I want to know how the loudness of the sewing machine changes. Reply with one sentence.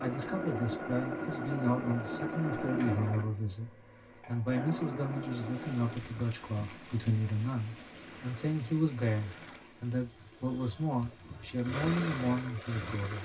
The volume of the sewing machine goes down, then up.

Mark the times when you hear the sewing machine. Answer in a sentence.
You can hear the sewing machine from 0.0 to 13.2 s.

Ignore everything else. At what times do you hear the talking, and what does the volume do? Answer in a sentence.
The talking can be heard from 0.0 to 13.2 s, at a steady volume.